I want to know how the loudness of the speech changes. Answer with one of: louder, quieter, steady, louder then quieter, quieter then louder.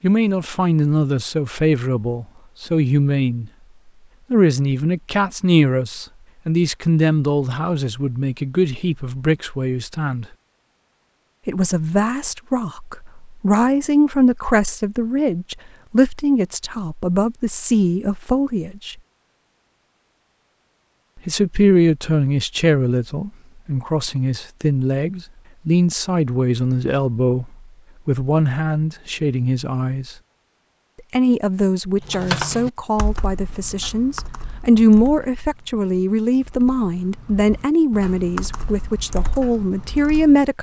steady.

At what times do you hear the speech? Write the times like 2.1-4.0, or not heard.
0.0-3.5, 4.3-10.2, 11.4-18.9, 21.2-30.1, 31.1-40.5.